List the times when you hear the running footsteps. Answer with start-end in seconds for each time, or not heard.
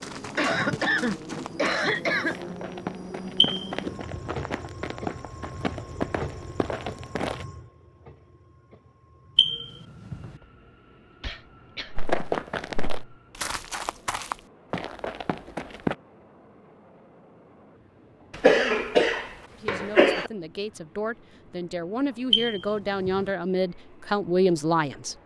0.0-7.5, 11.9-15.9.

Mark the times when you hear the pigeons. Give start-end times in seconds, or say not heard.
not heard.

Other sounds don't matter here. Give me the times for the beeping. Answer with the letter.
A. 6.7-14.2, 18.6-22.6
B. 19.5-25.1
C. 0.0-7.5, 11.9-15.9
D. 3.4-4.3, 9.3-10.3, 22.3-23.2
D.